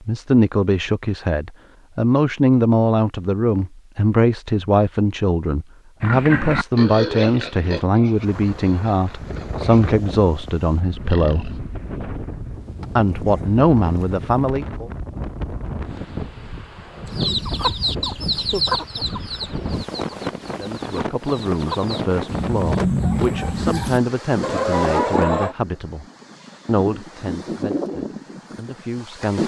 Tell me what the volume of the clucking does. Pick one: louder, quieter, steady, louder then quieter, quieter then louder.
quieter then louder.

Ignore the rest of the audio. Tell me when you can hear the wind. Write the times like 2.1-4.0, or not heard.
8.1-29.4.